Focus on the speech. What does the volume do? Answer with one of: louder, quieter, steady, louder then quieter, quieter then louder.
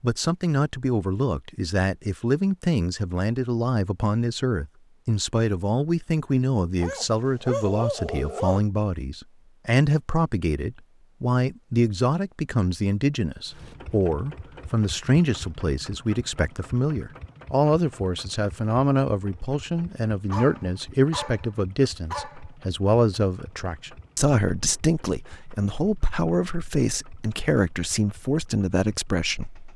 steady.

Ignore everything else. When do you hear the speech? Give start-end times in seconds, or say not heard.
0.0-29.7.